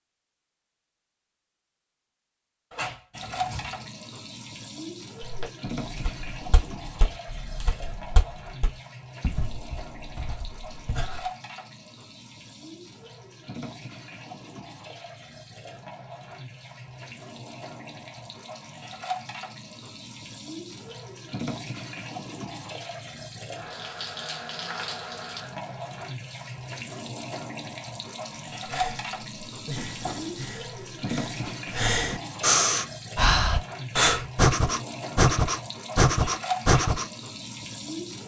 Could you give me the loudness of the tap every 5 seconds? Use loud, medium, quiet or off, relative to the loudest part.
loud, medium, medium, medium, loud, loud, loud, loud.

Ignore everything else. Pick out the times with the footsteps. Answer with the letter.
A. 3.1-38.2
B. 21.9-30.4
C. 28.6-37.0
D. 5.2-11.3
D.